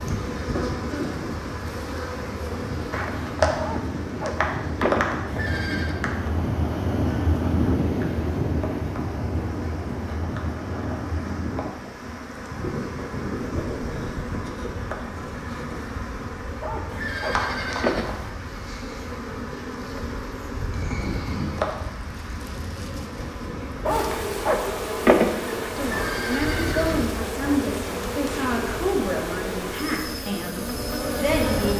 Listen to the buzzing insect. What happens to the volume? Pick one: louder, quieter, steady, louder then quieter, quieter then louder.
quieter then louder.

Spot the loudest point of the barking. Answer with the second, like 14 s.
25 s.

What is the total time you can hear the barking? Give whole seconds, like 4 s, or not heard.
5 s.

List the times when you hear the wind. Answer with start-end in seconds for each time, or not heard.
0.0-31.7.